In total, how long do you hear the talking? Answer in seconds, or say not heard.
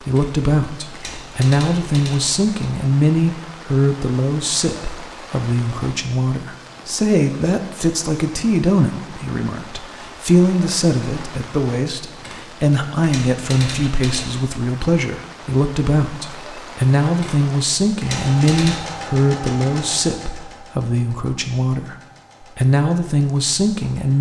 24 s.